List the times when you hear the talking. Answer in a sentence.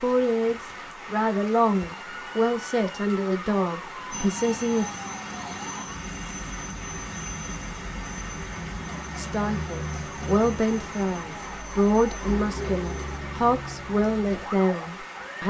You can hear the talking from 0.0 to 4.8 s and from 9.2 to 15.4 s.